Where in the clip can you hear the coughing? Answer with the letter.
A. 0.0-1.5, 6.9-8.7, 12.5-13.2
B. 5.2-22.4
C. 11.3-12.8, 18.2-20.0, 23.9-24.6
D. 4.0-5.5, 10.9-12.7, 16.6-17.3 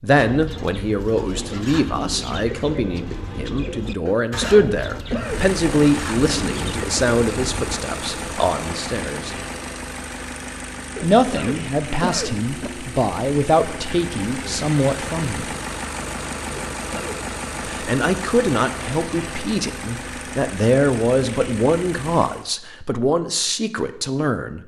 D.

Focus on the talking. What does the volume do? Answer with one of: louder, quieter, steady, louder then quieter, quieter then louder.
steady.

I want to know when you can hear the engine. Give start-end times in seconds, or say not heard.
5.2-22.4.